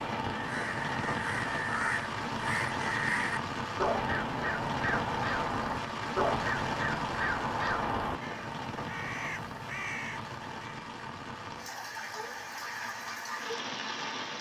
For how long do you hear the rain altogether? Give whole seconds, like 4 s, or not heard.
14 s.